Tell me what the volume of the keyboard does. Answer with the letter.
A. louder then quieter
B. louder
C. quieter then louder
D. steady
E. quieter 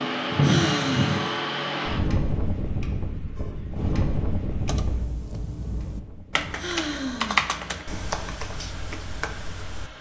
A.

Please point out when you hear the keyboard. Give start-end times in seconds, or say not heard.
4.5-9.9.